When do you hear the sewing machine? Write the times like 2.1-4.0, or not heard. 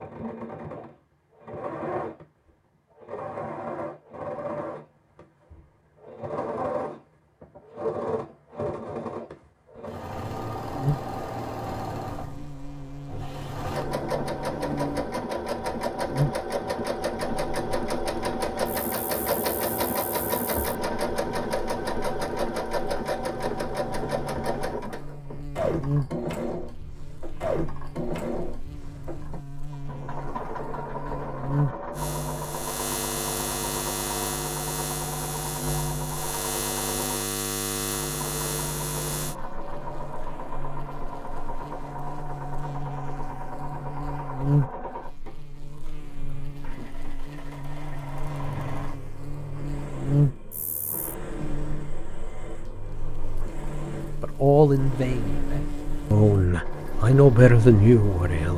0.0-58.5.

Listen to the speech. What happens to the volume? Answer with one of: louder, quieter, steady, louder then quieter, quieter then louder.
quieter then louder.